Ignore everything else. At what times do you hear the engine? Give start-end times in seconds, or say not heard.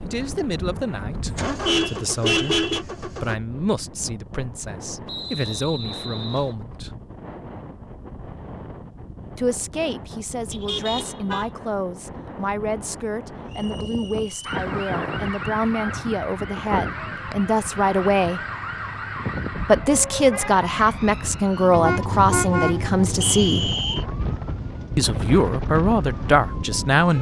0.0-3.4.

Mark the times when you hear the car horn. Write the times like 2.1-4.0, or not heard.
1.2-2.9, 10.5-11.4, 21.7-23.8.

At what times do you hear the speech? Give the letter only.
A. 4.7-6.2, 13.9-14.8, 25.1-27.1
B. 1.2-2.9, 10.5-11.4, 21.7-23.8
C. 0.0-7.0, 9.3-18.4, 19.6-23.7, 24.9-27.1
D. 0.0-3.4
C.